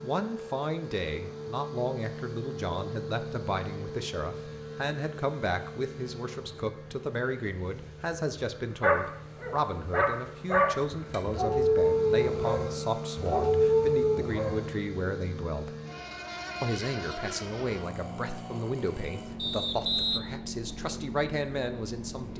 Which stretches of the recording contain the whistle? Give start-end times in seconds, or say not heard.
19.4-20.2.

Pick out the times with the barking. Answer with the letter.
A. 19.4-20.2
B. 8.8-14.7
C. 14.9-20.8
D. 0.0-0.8
B.